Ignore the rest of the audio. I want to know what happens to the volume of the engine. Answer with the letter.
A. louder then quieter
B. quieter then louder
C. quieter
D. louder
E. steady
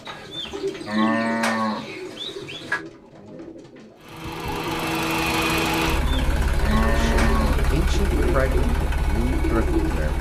C.